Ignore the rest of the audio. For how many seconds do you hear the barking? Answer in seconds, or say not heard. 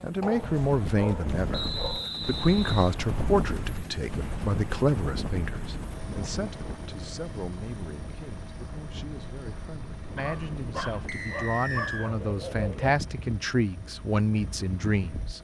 5 s.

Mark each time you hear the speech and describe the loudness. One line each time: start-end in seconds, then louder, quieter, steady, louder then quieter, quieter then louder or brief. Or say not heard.
0.0-15.3 quieter then louder.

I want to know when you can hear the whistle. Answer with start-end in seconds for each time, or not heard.
1.5-3.0, 11.1-12.1.